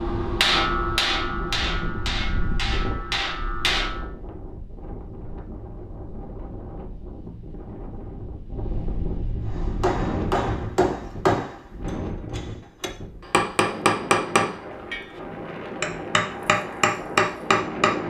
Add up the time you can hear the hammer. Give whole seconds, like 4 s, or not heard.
12 s.